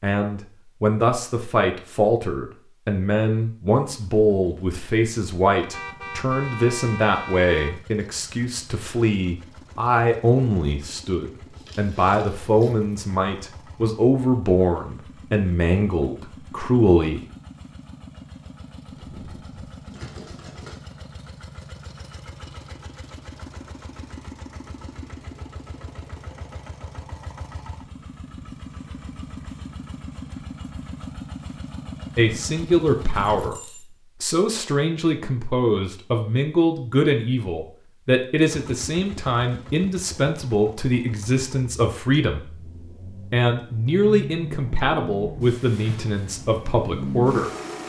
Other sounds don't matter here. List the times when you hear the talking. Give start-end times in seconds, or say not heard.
0.0-17.2, 32.1-47.5.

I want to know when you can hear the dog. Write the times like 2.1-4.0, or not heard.
not heard.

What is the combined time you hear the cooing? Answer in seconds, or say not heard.
not heard.